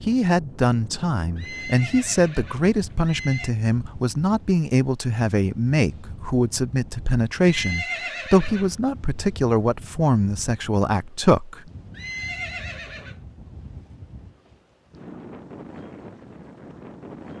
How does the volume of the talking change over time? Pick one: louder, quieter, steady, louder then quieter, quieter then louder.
steady.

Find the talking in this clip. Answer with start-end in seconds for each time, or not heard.
0.1-11.6.